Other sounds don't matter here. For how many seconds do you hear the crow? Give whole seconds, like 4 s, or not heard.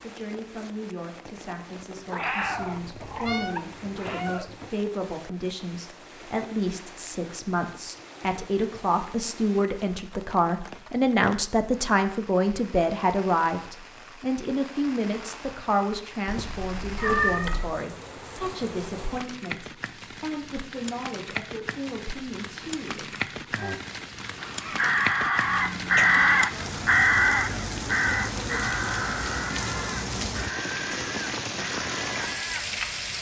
9 s.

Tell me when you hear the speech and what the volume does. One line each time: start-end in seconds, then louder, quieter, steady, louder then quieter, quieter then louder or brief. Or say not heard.
0.0-23.7 louder then quieter.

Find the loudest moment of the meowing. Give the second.
17 s.